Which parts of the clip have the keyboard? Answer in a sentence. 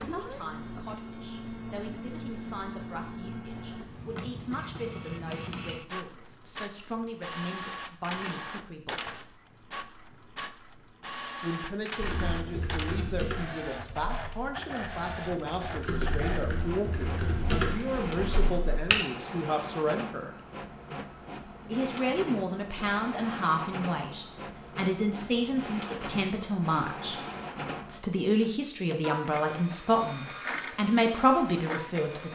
The keyboard can be heard from 12.0 to 18.9 s.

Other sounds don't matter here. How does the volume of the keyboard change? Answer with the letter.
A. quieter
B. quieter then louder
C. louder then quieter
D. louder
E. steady
B.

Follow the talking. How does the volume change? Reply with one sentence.
The volume of the talking goes up.